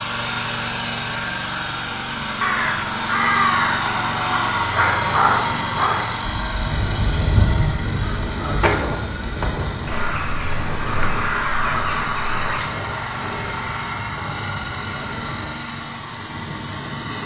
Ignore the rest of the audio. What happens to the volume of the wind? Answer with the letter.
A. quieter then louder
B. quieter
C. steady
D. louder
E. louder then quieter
B.